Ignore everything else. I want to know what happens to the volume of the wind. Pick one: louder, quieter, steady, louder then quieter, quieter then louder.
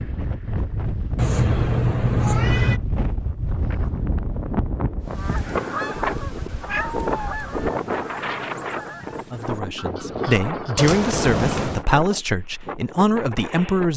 quieter.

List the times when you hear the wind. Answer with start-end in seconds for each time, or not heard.
0.0-13.9.